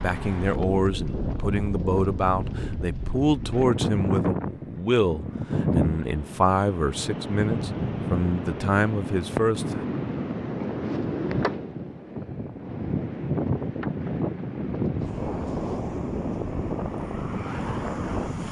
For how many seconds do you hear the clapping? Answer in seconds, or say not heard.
not heard.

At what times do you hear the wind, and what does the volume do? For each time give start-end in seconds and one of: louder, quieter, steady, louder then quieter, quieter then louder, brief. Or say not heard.
0.0-18.4 steady.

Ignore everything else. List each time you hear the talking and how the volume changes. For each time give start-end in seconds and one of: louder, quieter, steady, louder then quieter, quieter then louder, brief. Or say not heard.
0.0-9.8 steady.